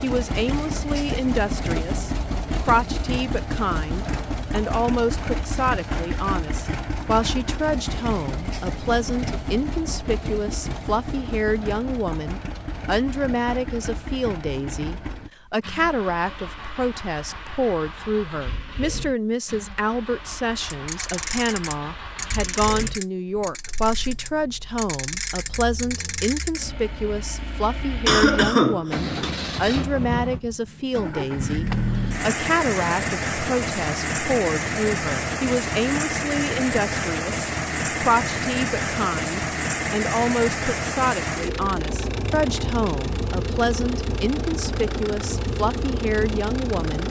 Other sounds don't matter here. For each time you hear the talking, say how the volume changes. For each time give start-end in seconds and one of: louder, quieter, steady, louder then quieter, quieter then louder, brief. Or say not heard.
0.0-47.0 steady.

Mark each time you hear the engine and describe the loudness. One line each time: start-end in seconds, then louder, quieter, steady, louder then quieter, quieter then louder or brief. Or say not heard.
0.0-47.0 quieter then louder.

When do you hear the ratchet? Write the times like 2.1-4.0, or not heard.
20.6-26.6.